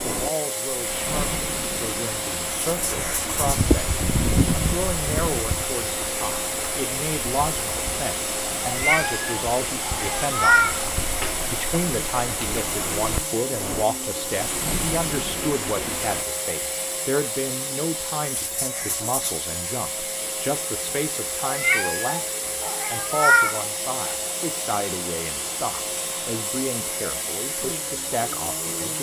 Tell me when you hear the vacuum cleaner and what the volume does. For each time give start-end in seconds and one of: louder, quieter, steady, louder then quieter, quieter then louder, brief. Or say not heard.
0.0-28.9 steady.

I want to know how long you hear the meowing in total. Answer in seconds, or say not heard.
5 s.